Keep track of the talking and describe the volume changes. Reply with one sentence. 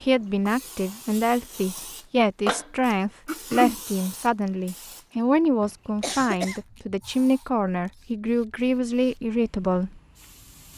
The volume of the talking stays about the same.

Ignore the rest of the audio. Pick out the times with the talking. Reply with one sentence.
The talking can be heard from 0.0 to 10.0 s.